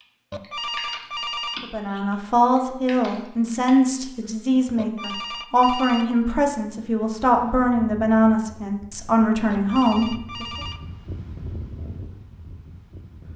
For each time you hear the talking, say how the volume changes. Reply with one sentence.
The talking can be heard from 1.6 to 10.4 s, at a steady volume.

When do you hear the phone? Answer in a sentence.
You can hear the phone from 0.3 to 1.6 s, from 4.8 to 6.1 s and from 9.5 to 10.8 s.